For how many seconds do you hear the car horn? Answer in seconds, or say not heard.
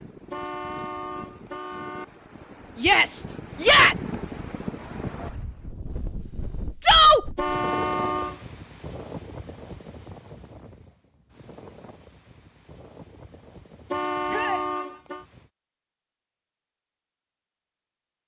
4 s.